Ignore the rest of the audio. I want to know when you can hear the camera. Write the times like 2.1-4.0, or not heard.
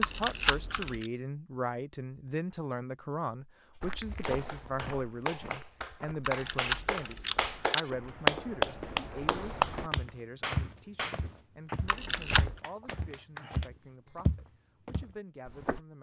0.0-1.1, 6.2-7.8, 11.8-12.6.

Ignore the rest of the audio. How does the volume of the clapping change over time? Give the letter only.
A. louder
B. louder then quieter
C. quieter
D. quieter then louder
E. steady
B.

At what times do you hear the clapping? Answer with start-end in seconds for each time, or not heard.
4.1-14.2.